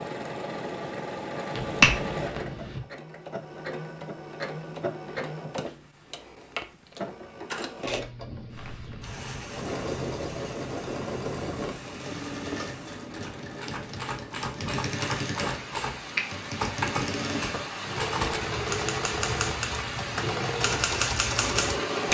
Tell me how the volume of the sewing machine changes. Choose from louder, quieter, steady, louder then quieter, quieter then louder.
steady.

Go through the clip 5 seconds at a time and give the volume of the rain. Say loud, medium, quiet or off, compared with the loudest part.
off, medium, medium, loud, loud.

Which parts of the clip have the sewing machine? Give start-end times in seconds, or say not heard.
0.0-22.1.